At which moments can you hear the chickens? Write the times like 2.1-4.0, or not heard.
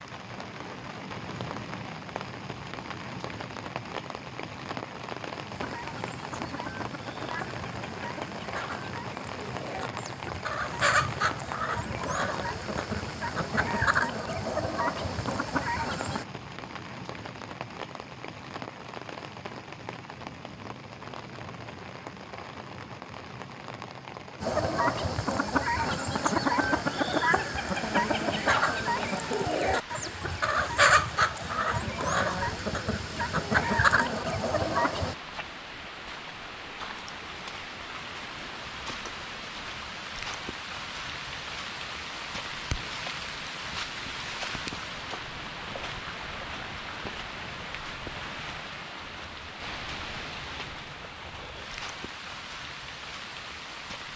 5.5-16.2, 24.4-35.1.